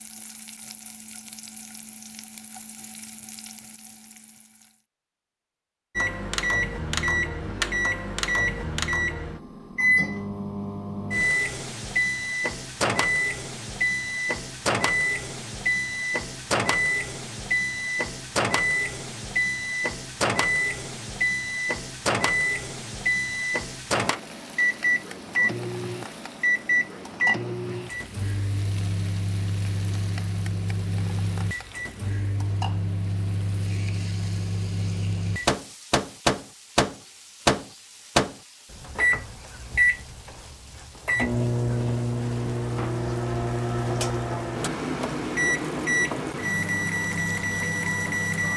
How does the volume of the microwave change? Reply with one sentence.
The loudness of the microwave stays about the same.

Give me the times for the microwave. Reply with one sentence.
The microwave can be heard from 6.0 to 48.5 s.